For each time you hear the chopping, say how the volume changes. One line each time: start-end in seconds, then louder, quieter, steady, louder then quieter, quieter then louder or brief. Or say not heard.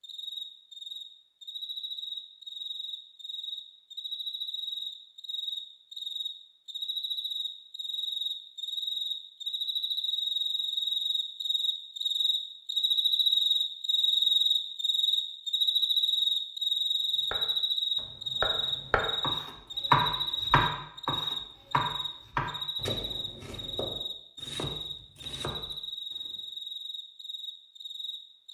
17.3-26.3 louder then quieter.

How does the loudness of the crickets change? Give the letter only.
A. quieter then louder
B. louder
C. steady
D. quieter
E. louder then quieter
E.